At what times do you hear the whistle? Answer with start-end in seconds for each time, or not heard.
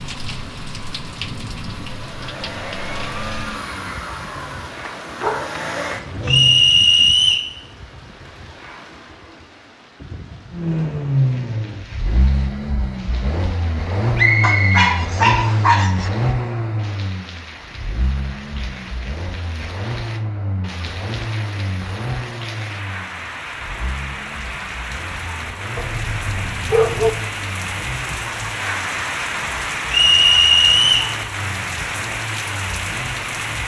6.2-7.5, 14.2-15.7, 29.9-31.1.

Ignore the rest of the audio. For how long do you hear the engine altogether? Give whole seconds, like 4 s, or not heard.
30 s.